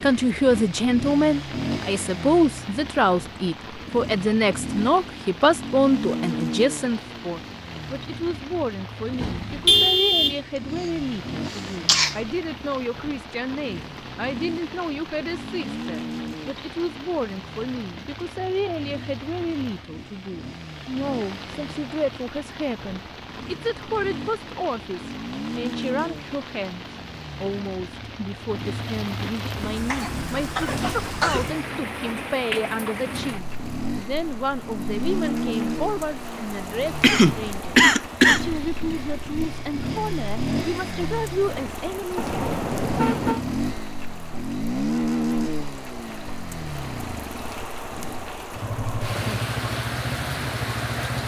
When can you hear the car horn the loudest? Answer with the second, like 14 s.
10 s.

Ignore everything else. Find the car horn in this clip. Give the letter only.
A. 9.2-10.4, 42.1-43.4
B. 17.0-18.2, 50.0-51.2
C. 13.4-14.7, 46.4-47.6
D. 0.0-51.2
A.